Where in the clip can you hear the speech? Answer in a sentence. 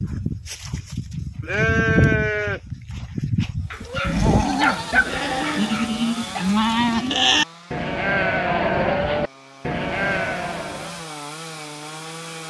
You can't hear the speech here.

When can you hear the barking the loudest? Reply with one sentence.
The loudest moment of the barking is at 5 seconds.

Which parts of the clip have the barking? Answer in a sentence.
You can hear the barking from 3.7 to 6.5 s.